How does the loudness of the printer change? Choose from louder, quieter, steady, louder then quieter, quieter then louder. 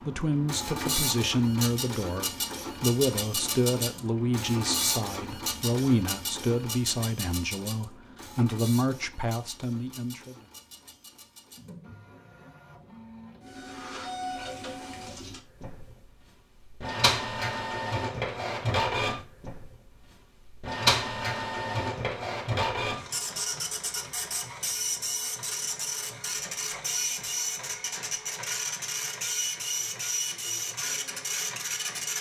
quieter then louder.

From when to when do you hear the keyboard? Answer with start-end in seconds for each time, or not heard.
not heard.